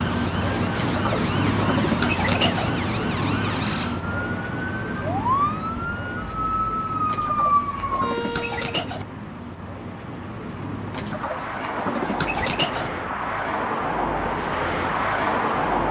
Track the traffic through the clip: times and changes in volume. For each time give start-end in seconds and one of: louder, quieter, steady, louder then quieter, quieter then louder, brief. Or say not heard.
0.0-15.8 quieter then louder.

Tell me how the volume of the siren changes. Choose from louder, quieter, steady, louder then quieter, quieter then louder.
louder.